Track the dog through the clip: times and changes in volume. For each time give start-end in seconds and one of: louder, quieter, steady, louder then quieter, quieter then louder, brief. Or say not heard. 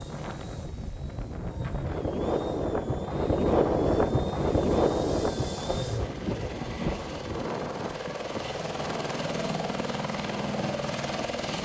not heard.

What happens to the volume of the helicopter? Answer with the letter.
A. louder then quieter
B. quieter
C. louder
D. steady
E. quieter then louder
C.